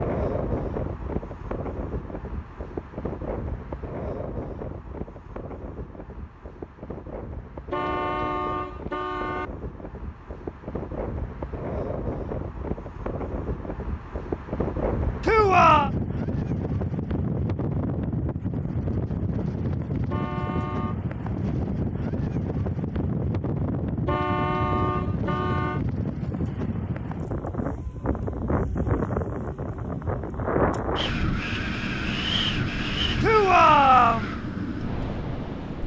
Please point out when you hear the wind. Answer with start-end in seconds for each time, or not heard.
0.0-35.8.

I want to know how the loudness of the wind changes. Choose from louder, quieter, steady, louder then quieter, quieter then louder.
louder.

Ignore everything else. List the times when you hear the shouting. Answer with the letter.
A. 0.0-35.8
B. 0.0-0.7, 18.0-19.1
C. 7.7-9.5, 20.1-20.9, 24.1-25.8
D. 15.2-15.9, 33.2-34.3
D.